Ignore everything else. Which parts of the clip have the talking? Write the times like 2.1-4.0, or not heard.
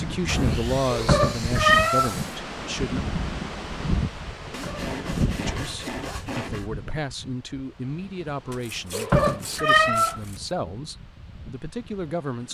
0.0-3.0, 5.3-12.4.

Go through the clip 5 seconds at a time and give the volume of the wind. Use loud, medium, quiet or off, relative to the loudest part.
loud, medium, quiet.